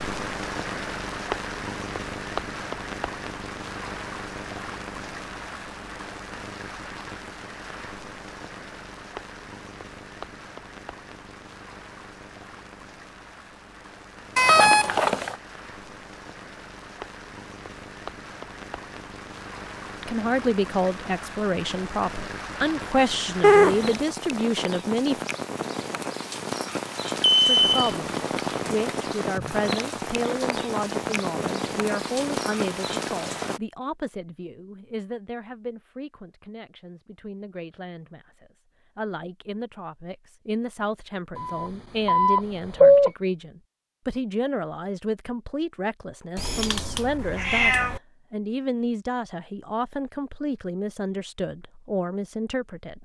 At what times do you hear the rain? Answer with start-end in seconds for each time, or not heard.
0.0-33.6.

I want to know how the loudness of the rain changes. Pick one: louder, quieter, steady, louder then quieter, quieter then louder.
quieter then louder.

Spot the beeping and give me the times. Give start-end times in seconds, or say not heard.
14.3-15.3, 27.1-27.9, 41.4-43.1.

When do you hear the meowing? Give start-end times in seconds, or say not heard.
23.4-24.0, 46.4-48.0.